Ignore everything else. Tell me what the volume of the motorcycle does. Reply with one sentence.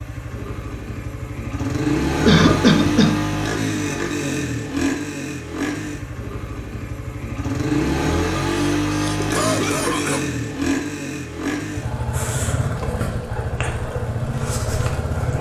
The loudness of the motorcycle stays about the same.